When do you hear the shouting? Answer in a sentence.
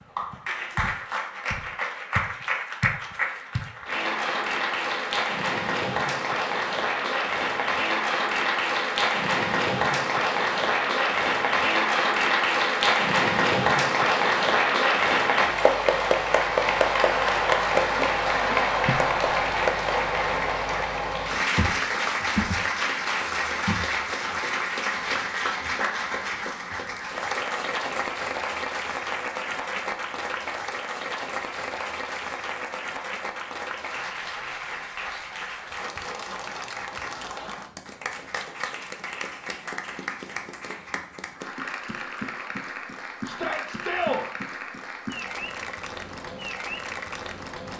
You can hear the shouting from 43.2 to 44.2 s.